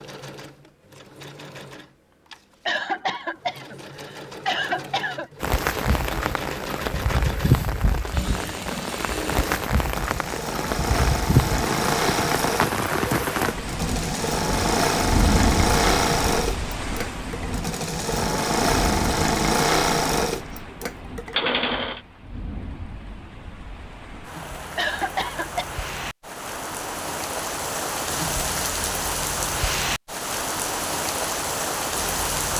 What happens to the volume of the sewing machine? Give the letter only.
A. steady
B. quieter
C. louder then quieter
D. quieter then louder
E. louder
E.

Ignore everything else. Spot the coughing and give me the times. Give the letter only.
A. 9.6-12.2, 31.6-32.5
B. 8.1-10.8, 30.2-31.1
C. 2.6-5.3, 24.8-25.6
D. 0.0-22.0
C.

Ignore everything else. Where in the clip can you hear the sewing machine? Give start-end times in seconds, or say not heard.
0.0-22.0.